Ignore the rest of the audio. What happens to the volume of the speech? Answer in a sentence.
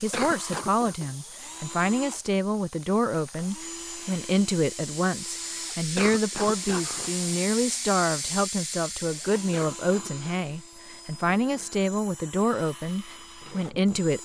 The volume of the speech stays about the same.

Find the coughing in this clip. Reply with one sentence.
The coughing can be heard from 0.1 to 0.9 s, from 6.0 to 7.2 s and from 9.5 to 10.3 s.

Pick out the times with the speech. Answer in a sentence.
The speech can be heard from 0.0 to 14.1 s.